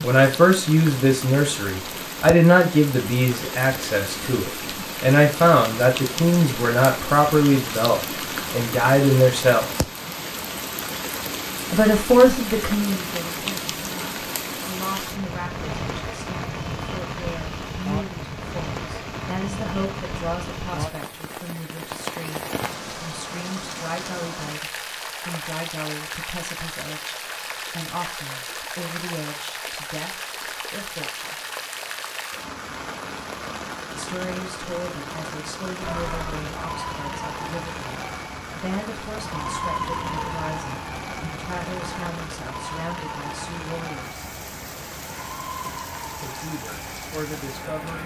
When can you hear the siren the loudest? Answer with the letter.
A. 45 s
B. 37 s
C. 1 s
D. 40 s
D.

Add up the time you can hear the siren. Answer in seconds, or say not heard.
12 s.